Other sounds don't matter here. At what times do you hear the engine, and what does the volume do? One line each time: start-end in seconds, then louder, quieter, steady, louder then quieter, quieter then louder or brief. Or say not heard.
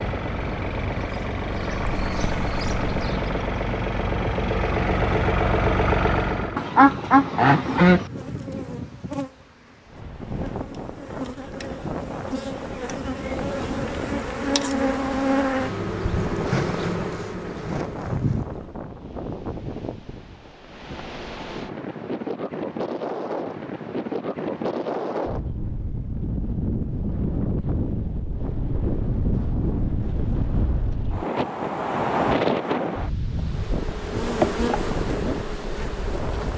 0.0-6.7 louder.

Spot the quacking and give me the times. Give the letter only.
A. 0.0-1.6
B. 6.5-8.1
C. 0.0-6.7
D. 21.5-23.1
B.